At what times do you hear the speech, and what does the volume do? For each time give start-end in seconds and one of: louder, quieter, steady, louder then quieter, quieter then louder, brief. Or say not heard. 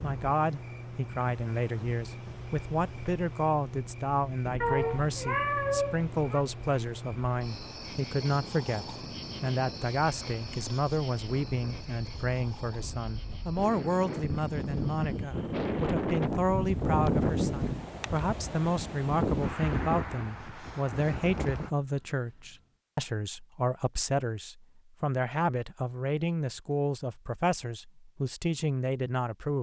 0.0-29.5 steady.